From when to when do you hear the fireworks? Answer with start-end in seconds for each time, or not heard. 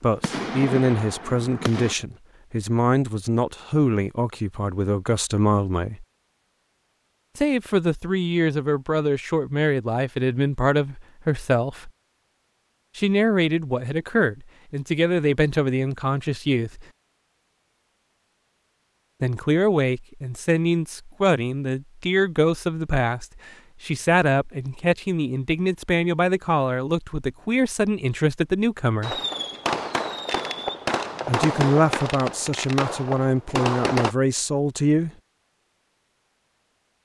0.0-1.9, 29.0-34.1.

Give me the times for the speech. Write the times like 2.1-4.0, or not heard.
0.0-6.0, 7.3-11.9, 12.9-16.9, 19.2-29.2, 31.2-35.1.